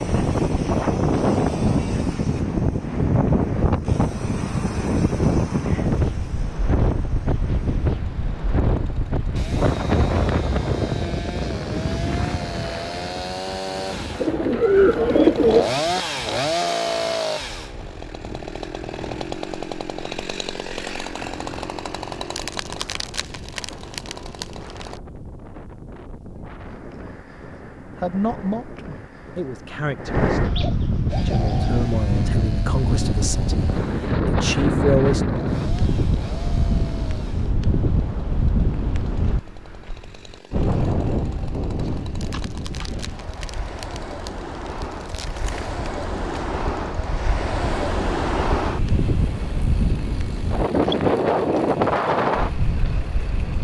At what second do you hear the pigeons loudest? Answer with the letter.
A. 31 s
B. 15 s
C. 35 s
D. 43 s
B.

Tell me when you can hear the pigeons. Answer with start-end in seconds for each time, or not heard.
14.2-15.7, 30.4-31.9, 41.8-43.0.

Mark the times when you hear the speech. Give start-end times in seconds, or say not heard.
28.0-35.2.